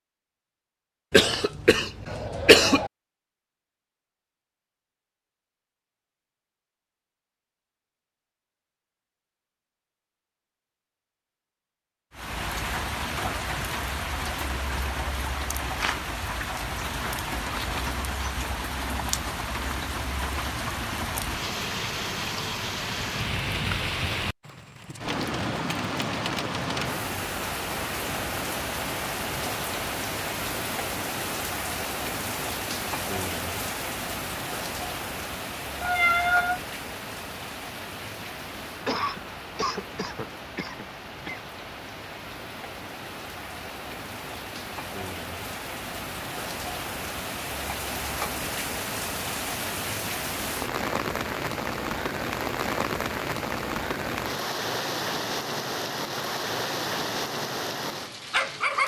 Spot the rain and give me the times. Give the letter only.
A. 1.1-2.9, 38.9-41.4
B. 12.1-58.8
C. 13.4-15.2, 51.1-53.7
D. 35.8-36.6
B.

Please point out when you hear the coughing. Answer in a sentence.
You can hear the coughing from 1.1 to 2.9 s and from 38.9 to 41.4 s.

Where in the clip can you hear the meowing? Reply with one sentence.
You can hear the meowing from 35.8 to 36.6 s.